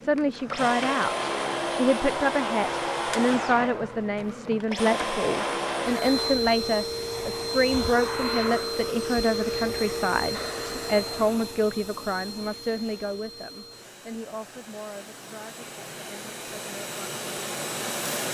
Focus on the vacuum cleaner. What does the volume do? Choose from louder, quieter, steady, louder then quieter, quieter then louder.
quieter.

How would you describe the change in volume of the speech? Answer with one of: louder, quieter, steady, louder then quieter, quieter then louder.
quieter.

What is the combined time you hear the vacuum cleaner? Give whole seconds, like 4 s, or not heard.
18 s.